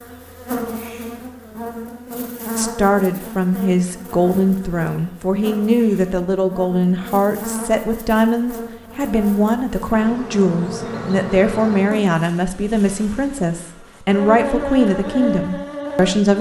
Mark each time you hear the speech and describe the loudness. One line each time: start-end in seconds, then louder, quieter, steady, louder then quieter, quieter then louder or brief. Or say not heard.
2.5-16.3 steady.